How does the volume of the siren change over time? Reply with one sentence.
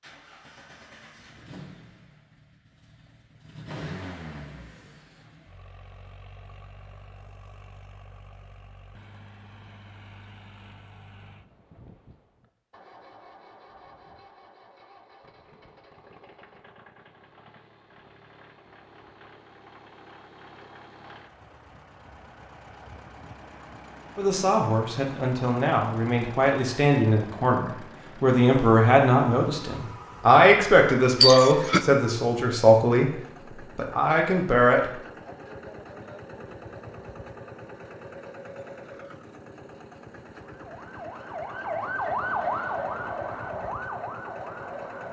The loudness of the siren goes up, then down.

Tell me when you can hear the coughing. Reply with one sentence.
You can hear the coughing from 31.2 to 31.9 s.